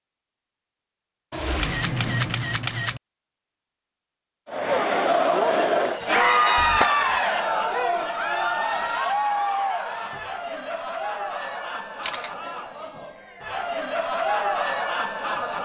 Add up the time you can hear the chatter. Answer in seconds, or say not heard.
11 s.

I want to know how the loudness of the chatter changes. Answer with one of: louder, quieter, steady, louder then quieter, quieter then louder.
quieter then louder.